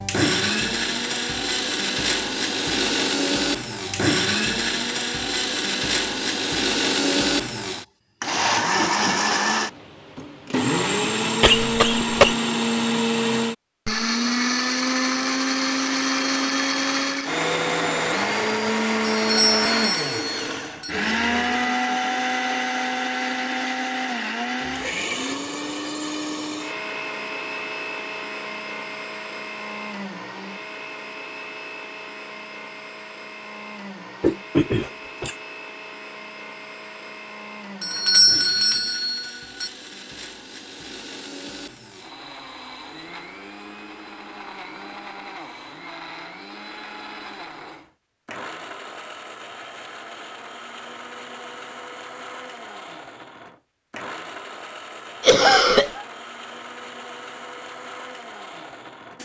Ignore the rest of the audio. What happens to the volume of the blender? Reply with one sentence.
The volume of the blender goes down.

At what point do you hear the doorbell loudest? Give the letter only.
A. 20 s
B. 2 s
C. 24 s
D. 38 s
D.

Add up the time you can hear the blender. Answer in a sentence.
You can hear the blender for 59 seconds altogether.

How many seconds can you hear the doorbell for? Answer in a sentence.
You can hear the doorbell for 4 seconds altogether.